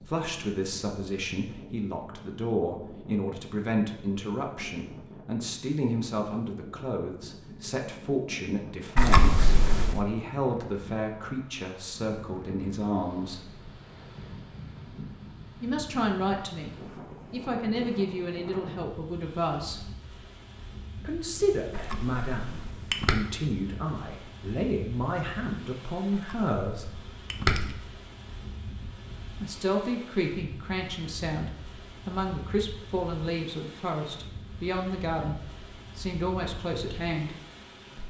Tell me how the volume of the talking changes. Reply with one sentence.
The loudness of the talking stays about the same.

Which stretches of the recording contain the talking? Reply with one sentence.
The talking can be heard from 0.0 to 13.7 s, from 15.6 to 19.9 s, from 21.0 to 27.0 s and from 29.3 to 37.4 s.